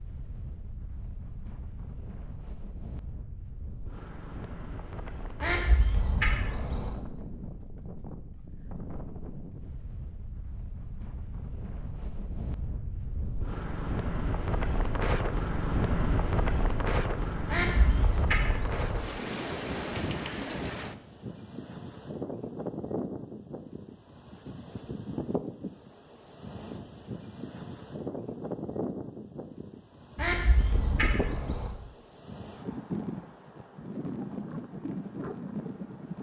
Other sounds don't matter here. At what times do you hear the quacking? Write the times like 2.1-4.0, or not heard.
5.4-6.9, 17.4-19.0, 30.1-31.7.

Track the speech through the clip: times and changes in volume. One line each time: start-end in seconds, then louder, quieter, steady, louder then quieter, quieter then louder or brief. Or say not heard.
not heard.